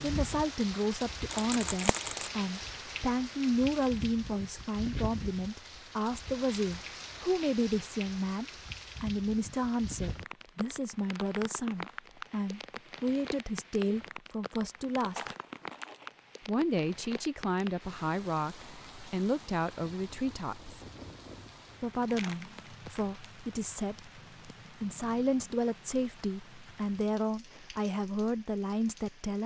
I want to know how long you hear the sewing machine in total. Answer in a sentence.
The sewing machine can't be heard in this clip.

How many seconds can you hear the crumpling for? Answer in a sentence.
You can hear the crumpling for 3 seconds altogether.